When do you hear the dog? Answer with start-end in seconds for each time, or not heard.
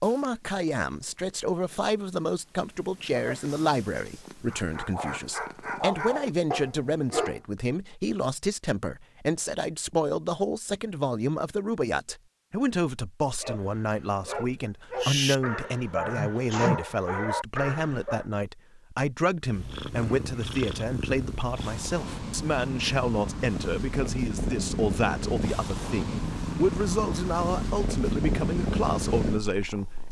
4.5-7.4, 13.4-18.2.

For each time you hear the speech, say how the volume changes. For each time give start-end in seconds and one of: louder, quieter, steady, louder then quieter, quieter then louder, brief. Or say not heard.
0.0-30.0 steady.